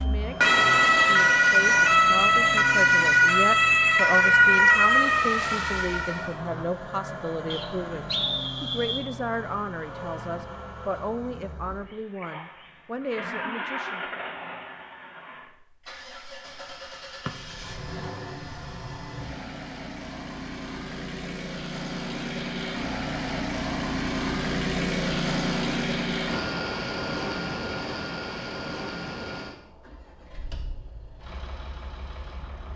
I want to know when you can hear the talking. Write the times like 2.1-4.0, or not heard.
0.0-14.2.